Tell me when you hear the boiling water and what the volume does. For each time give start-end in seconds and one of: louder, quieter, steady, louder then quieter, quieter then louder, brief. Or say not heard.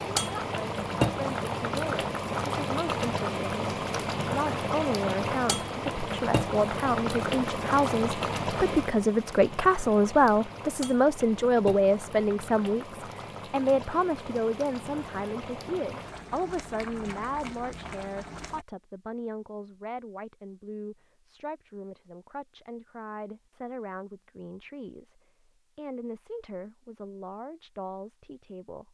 0.0-18.6 quieter.